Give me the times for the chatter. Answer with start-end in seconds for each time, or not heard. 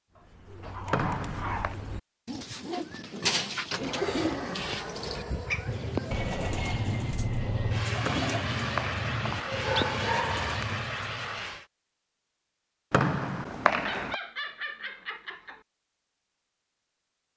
not heard.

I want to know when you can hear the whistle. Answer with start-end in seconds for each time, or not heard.
0.9-1.8, 8.0-9.7, 12.9-14.2.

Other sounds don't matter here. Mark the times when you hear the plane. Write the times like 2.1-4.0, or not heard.
3.7-11.7.